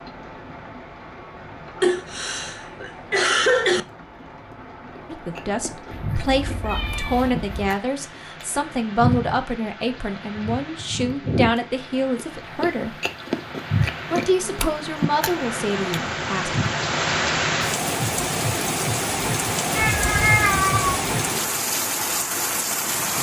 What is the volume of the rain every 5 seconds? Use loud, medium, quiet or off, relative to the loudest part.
quiet, quiet, quiet, loud, loud.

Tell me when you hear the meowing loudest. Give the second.
20 s.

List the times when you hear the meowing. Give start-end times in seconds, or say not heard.
5.9-7.7, 19.8-20.9.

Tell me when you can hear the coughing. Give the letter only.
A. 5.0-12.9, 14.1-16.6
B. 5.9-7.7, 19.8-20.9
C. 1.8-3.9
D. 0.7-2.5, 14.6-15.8
C.